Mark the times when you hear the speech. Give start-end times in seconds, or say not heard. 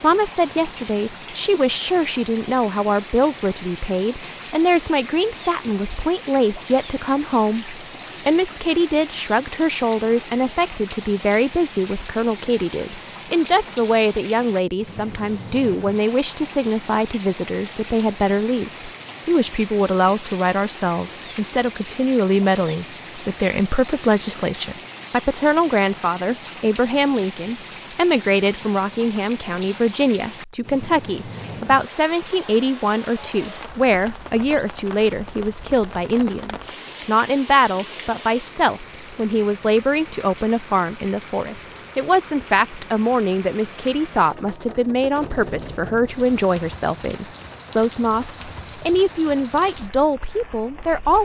0.0-51.2.